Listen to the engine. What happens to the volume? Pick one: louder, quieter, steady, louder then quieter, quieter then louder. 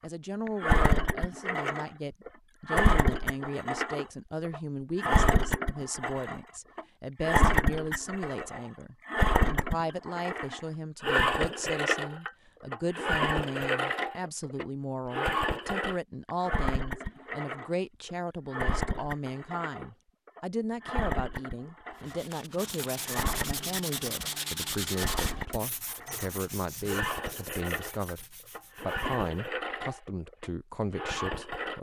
quieter.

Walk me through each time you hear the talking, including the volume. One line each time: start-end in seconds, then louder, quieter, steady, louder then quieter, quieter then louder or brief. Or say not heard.
0.0-31.7 steady.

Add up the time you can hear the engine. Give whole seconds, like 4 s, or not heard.
31 s.